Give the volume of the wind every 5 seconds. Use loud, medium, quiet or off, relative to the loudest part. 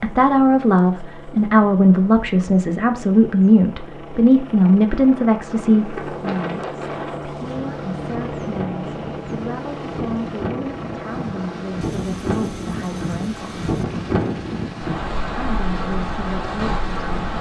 off, medium, loud, loud.